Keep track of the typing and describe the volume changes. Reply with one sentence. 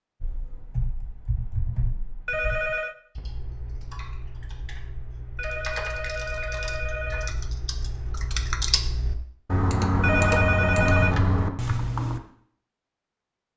The loudness of the typing goes down, then up.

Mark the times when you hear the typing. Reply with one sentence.
The typing can be heard from 0.2 to 12.2 s.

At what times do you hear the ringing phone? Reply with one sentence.
You can hear the ringing phone from 2.2 to 3.0 s, from 5.3 to 7.3 s and from 10.0 to 11.2 s.